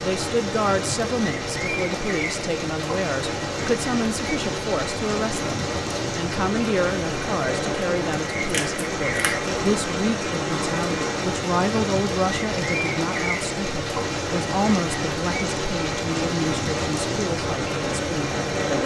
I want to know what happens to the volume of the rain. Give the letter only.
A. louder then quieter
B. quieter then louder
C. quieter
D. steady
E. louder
D.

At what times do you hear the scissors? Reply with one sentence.
The scissors can be heard from 8.4 to 9.4 s.